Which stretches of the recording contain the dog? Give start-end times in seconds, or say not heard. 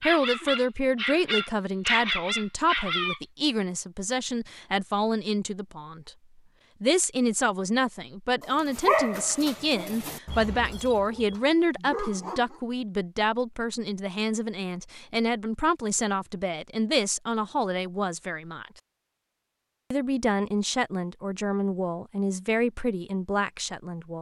0.0-3.2, 8.4-12.6.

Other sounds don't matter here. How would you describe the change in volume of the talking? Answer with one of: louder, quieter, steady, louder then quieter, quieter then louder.
steady.